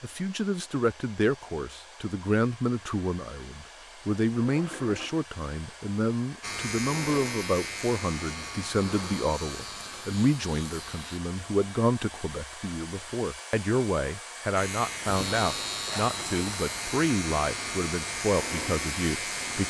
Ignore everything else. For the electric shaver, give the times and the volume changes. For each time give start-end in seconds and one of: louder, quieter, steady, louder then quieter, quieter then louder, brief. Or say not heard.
6.4-11.2 quieter
14.6-19.6 steady.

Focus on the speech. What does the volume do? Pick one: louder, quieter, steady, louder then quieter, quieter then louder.
steady.